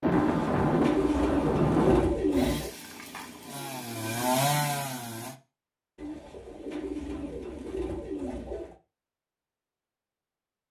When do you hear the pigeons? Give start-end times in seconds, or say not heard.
0.1-2.7, 6.0-8.8.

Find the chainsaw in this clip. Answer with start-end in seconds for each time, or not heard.
2.3-5.3.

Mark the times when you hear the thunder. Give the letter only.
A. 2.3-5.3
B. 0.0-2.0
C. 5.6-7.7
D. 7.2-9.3
B.